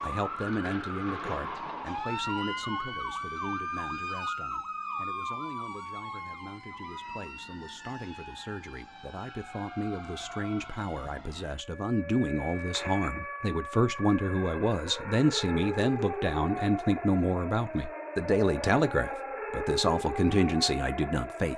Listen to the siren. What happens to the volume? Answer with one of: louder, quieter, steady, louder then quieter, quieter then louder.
quieter then louder.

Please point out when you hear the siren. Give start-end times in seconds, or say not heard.
0.0-21.5.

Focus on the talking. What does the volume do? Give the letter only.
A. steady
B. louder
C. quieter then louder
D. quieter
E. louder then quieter
C.